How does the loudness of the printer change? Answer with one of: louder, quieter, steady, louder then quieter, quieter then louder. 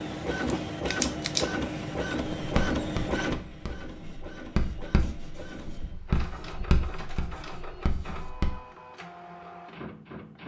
quieter.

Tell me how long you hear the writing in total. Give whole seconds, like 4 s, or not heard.
6 s.